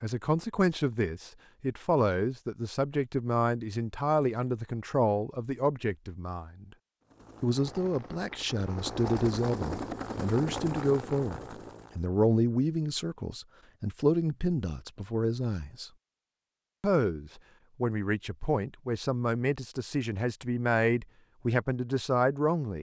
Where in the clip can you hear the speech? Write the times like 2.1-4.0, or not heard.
0.0-6.7, 7.4-15.9, 16.8-22.7.